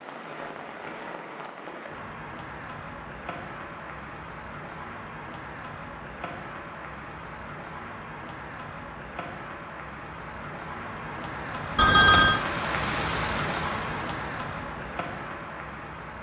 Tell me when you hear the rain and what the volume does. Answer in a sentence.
You can hear the rain from 0.0 to 16.1 s, getting louder.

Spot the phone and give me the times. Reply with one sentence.
You can hear the phone from 11.8 to 12.4 s.